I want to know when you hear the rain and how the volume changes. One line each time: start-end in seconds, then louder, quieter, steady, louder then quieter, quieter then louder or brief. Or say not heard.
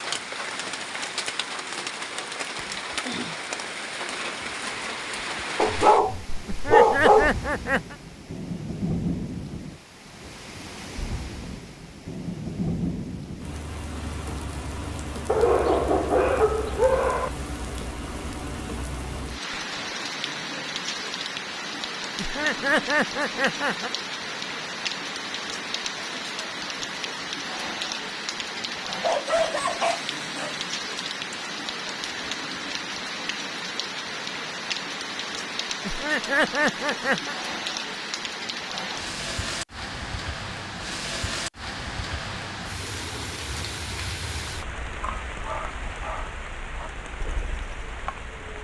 0.0-48.5 steady.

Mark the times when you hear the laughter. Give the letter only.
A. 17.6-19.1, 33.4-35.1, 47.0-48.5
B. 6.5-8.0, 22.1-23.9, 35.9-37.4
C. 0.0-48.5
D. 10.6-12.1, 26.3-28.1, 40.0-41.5
B.